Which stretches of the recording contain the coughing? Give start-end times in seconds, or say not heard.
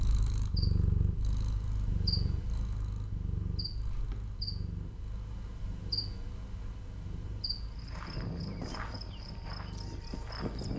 not heard.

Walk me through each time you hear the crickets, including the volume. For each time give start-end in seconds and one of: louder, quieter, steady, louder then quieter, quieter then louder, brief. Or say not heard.
0.0-10.7 quieter then louder.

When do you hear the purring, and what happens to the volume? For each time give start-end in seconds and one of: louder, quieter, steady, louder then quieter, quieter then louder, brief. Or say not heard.
0.0-10.4 quieter.